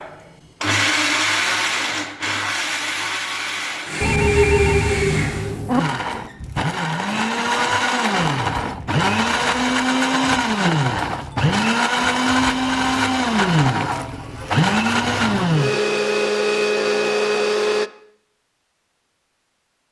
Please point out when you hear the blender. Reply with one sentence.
You can hear the blender from 0.0 to 17.9 s.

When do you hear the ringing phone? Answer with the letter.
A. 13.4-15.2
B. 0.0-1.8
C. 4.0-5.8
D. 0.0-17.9
C.